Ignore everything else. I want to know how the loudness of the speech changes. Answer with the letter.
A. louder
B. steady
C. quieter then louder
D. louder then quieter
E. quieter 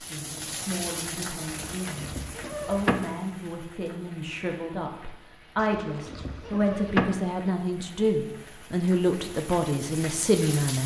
A.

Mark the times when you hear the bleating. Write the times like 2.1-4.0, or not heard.
1.5-3.0, 5.5-7.2.